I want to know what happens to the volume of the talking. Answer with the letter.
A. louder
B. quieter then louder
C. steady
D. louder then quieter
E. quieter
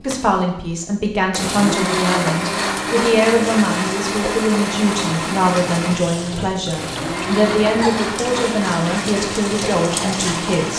C.